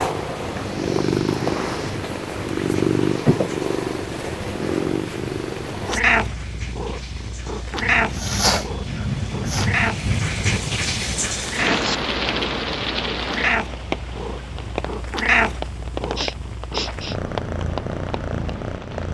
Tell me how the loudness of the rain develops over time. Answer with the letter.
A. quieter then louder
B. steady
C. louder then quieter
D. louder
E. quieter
C.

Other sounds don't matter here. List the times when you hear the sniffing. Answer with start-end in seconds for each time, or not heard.
0.6-2.0, 8.2-9.7, 16.1-17.1.